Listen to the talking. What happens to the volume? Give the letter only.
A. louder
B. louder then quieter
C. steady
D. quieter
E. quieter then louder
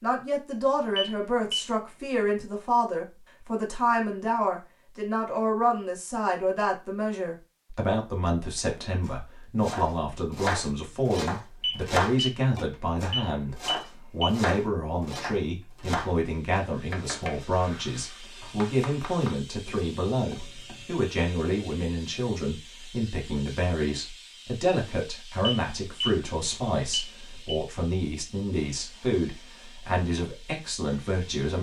C.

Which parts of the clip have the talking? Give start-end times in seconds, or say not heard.
0.0-31.5.